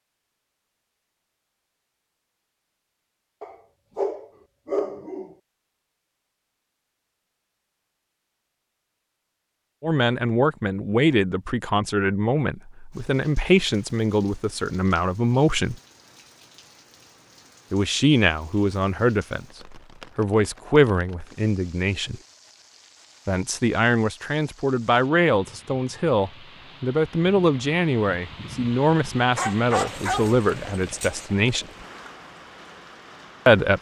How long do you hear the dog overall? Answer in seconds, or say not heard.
4 s.